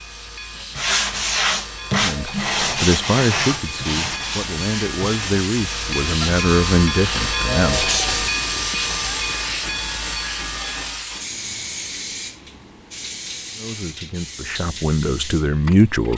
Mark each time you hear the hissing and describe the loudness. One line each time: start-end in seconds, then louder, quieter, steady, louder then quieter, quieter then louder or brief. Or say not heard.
0.0-16.1 louder then quieter.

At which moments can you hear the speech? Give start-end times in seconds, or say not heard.
1.9-7.8, 13.6-16.1.